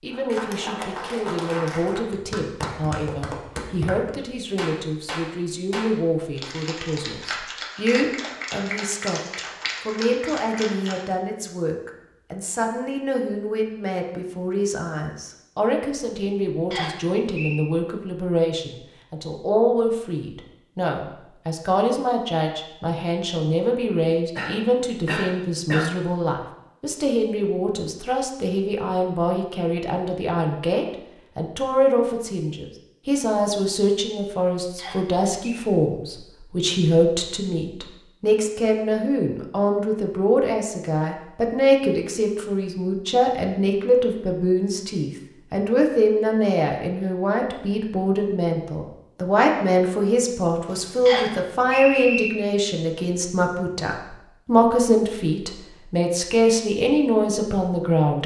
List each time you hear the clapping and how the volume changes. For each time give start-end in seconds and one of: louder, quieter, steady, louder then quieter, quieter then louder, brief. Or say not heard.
0.1-11.1 steady.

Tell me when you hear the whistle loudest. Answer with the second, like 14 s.
52 s.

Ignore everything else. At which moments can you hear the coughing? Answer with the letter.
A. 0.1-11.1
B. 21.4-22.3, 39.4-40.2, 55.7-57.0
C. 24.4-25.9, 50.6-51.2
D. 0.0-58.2
C.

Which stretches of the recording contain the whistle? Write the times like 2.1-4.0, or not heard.
16.7-17.6, 34.8-35.6, 51.0-52.3.